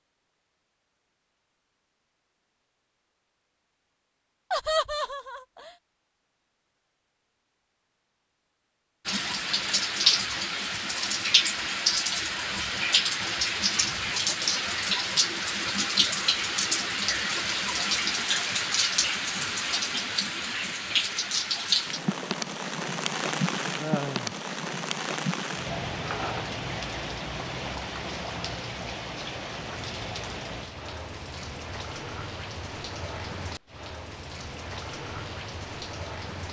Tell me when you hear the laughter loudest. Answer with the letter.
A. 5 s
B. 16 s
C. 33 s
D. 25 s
A.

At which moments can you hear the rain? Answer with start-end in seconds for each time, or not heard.
9.1-36.4.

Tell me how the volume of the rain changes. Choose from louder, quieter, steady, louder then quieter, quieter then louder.
quieter.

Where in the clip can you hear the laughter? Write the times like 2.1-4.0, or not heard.
4.5-5.7, 23.8-24.4.